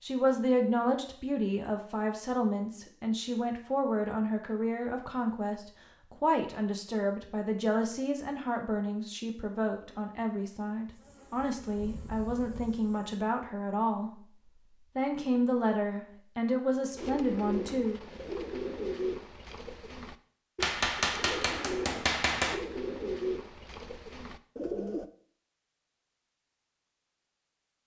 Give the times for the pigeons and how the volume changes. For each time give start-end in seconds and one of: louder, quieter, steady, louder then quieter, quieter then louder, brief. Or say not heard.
16.9-25.1 steady.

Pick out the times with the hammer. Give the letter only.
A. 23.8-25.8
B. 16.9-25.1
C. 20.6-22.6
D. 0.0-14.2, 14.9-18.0
C.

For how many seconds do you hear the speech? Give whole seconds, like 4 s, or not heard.
17 s.